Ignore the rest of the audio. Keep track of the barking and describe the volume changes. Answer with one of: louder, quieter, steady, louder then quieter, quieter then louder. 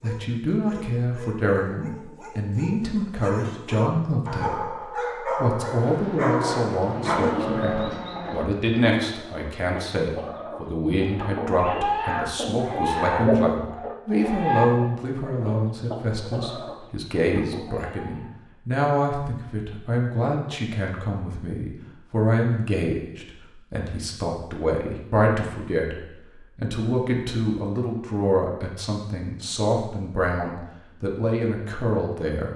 louder.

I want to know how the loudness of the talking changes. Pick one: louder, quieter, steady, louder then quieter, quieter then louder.
steady.